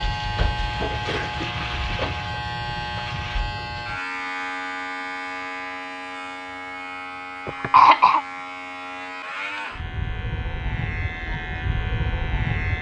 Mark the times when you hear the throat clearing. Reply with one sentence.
You can hear the throat clearing from 1.1 to 1.6 s and from 7.5 to 8.2 s.